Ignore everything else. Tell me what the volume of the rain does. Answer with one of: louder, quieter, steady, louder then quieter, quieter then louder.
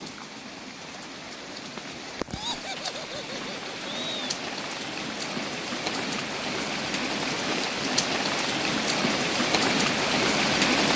louder.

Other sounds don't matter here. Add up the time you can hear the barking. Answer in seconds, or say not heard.
not heard.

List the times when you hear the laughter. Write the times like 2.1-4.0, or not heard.
2.3-4.3.